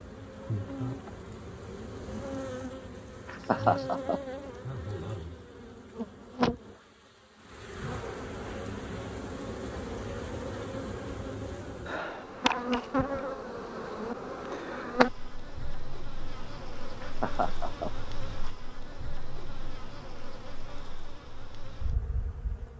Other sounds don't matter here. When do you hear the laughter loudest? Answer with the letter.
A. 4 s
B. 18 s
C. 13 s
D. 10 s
A.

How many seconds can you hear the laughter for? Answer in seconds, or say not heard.
2 s.